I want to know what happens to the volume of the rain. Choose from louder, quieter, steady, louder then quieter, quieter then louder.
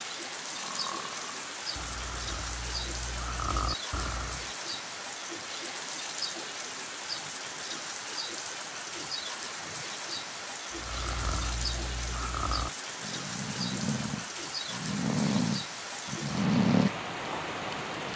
steady.